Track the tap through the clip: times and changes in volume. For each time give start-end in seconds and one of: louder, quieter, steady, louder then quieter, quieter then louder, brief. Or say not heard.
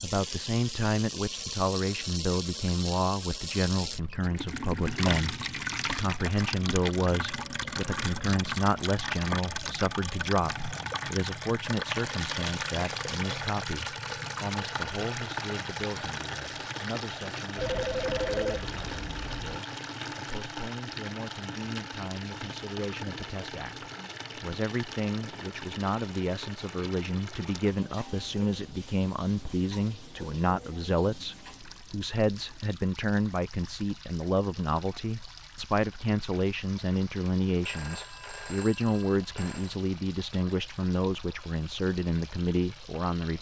0.0-43.3 quieter.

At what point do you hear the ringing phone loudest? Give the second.
18 s.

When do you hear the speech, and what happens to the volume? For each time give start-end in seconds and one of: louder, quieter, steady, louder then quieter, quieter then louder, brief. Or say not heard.
0.0-43.3 quieter then louder.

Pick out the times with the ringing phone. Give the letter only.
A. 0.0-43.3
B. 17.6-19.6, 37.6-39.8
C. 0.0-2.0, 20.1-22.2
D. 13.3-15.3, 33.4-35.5
B.